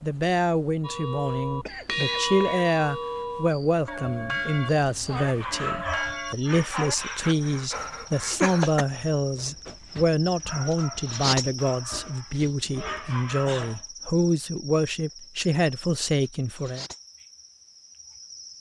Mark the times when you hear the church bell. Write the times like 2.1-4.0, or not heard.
0.8-7.0.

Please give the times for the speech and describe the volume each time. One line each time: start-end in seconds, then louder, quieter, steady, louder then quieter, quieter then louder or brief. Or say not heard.
0.0-16.9 steady.